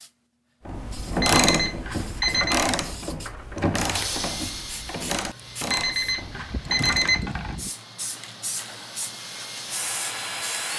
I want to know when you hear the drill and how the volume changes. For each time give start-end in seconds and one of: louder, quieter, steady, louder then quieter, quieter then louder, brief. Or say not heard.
3.1-10.7 quieter then louder.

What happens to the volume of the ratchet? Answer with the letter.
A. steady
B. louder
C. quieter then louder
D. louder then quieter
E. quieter
E.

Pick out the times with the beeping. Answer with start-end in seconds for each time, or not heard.
1.2-2.6, 5.7-7.5.